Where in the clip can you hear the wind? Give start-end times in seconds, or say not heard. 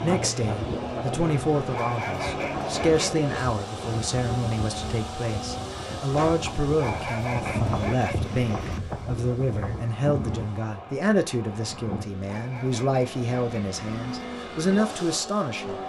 0.0-12.1.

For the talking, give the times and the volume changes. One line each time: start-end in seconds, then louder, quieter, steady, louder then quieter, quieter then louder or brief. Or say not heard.
0.0-15.8 steady.